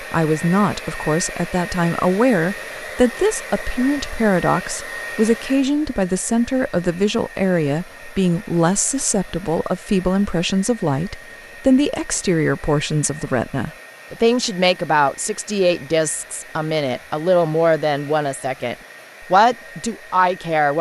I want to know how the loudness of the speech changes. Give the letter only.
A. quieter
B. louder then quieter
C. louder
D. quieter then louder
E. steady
E.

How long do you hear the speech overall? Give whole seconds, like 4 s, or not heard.
21 s.